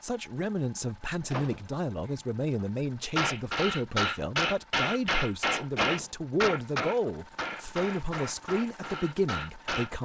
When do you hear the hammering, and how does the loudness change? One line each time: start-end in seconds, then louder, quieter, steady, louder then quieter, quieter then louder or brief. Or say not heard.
3.1-10.0 quieter.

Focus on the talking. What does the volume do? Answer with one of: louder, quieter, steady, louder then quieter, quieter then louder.
steady.